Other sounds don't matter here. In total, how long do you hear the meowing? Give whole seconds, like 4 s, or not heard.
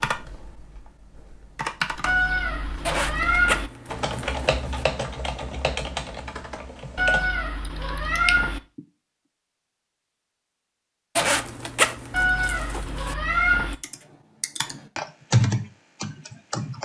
5 s.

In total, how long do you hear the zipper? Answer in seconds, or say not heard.
4 s.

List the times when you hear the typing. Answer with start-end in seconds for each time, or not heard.
0.0-8.8, 13.8-16.7.